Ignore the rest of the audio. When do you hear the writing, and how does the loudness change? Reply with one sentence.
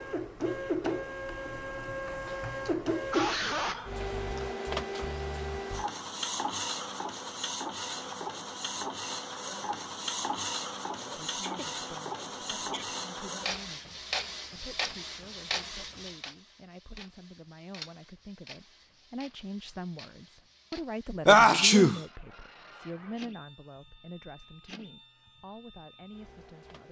You can't hear the writing here.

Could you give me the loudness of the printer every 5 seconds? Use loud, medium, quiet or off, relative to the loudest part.
loud, loud, loud, medium, quiet, quiet.